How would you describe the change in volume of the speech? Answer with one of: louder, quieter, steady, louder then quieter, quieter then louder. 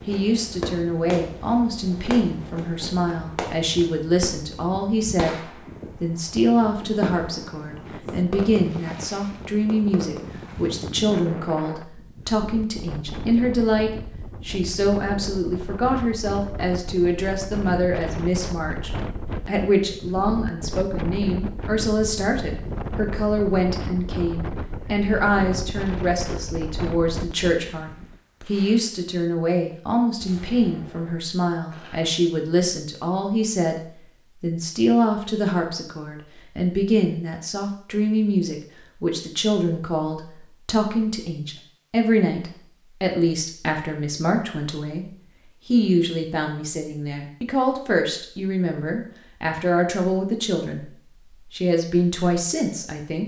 steady.